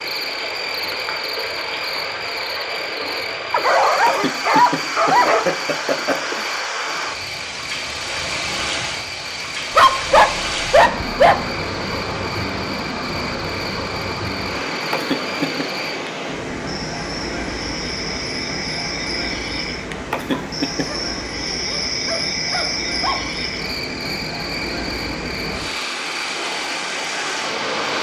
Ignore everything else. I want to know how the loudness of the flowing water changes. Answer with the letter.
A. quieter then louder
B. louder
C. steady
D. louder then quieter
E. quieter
C.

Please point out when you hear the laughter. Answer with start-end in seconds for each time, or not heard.
4.0-6.5, 14.9-15.7, 20.1-20.9.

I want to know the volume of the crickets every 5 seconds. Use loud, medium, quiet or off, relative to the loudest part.
loud, medium, medium, loud, loud, medium.